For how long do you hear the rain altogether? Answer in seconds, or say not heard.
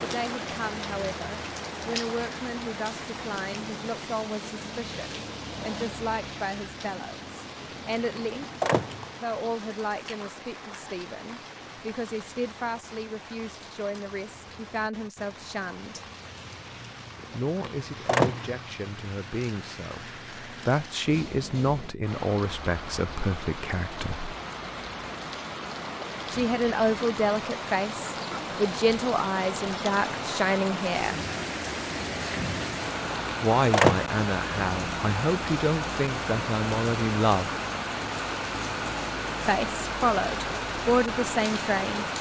42 s.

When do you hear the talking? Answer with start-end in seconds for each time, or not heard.
0.0-8.6, 9.2-16.0, 17.3-24.4, 26.3-31.1, 33.4-37.5, 39.4-42.0.